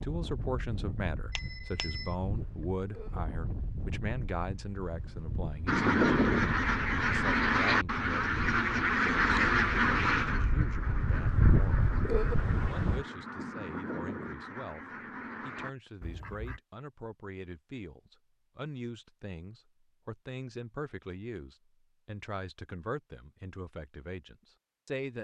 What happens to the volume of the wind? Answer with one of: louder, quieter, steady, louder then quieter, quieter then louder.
louder.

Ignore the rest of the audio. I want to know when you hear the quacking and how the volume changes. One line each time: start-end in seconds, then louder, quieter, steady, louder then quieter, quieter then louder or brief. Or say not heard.
5.7-16.6 quieter.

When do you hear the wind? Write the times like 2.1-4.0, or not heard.
0.0-13.1.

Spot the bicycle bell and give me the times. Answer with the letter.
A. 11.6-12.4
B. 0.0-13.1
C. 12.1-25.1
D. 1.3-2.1
D.